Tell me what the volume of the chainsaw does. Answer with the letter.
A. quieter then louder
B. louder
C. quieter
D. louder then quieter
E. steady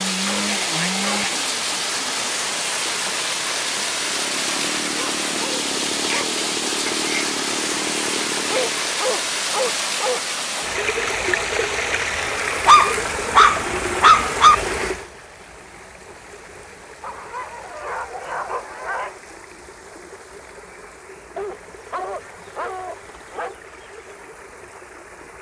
A.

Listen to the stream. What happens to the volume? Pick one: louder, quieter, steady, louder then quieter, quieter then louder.
quieter.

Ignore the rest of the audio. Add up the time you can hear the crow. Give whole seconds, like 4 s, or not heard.
not heard.